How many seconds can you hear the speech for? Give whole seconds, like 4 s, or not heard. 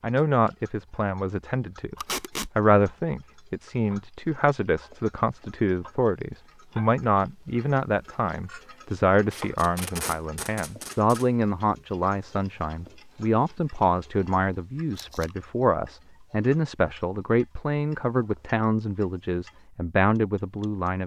21 s.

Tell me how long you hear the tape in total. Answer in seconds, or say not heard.
3 s.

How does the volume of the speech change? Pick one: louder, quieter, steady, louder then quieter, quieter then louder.
steady.